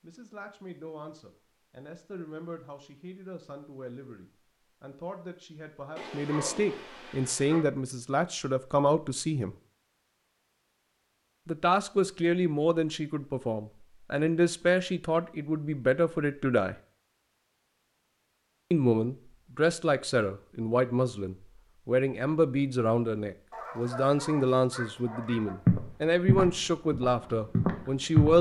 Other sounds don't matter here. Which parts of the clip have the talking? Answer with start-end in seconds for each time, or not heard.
0.0-9.6, 11.4-16.8, 18.7-28.3.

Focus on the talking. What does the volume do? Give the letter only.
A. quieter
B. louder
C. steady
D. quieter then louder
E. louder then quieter
B.